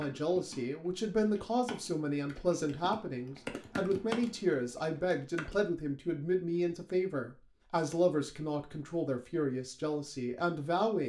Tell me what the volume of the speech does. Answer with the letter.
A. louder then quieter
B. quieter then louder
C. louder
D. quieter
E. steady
E.